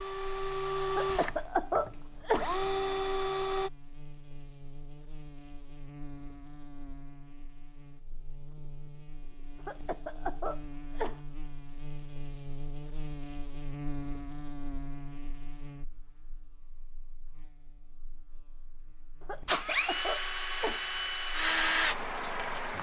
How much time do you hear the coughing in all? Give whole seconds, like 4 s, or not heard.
5 s.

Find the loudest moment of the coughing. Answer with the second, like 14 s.
2 s.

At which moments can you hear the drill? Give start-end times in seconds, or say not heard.
0.0-3.7, 19.4-22.7.